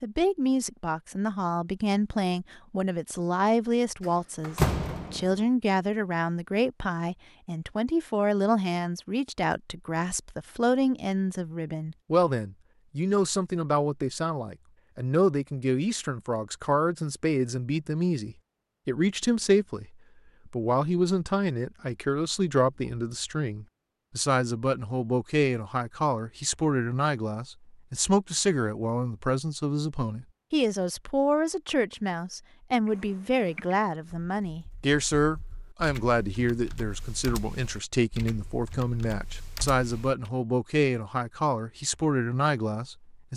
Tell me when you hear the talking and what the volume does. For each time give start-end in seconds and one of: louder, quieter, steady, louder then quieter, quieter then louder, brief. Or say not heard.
0.0-19.9 steady
20.4-43.3 steady.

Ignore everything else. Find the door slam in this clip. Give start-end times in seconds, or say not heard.
4.0-5.4.